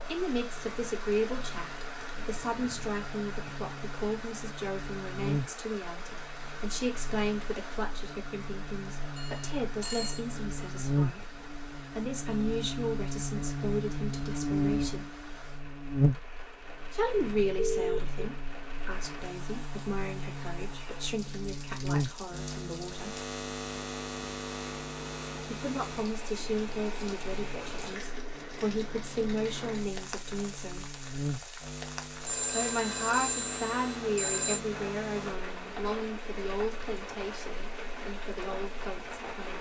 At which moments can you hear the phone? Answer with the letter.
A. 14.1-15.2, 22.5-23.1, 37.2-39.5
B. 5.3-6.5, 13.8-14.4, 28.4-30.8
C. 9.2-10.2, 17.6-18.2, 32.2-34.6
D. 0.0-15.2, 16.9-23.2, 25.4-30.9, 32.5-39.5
C.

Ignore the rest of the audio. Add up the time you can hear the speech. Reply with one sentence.
The speech can be heard for 34 seconds in total.